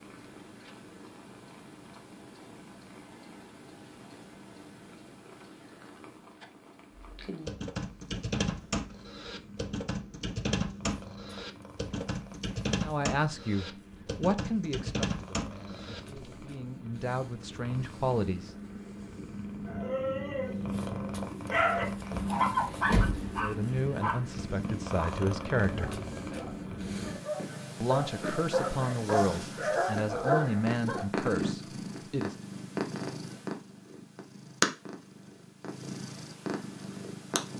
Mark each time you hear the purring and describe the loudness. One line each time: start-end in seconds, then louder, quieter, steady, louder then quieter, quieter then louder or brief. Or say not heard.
0.0-37.5 louder.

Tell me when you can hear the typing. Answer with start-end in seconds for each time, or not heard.
7.2-16.4.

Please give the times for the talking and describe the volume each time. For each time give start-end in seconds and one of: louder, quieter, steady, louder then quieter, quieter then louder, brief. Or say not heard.
12.8-18.5 quieter then louder
23.4-26.0 brief
27.8-32.4 steady.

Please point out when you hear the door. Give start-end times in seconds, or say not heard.
22.1-23.2.